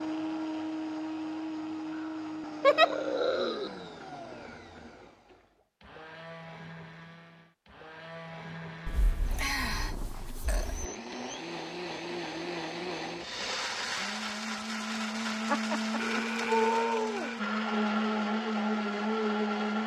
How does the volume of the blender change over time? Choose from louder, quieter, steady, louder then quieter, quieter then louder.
quieter then louder.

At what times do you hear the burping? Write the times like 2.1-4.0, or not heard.
1.9-3.7, 8.8-10.8, 15.9-17.4.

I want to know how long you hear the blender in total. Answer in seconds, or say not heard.
20 s.